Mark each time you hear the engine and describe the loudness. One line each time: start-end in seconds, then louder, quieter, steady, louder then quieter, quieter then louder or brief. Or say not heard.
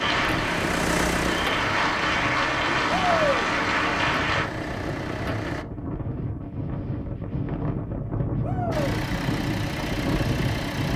0.0-5.7 quieter
8.7-10.9 brief.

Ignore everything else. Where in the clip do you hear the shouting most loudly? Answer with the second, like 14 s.
3 s.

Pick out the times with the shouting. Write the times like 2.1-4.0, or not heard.
2.9-3.5, 8.4-8.9.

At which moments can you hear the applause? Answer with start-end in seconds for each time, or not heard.
0.0-4.5.